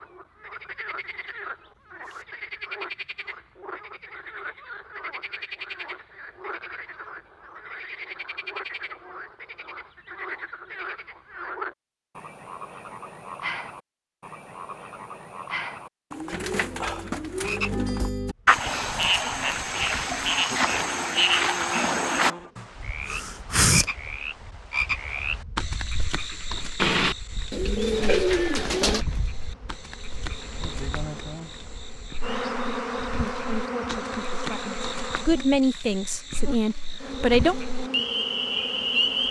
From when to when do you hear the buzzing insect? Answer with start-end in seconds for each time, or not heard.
18.4-39.2.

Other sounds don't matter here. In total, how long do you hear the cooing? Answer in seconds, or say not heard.
4 s.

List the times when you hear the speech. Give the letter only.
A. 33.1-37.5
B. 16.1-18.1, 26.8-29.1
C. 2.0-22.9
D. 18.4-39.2
A.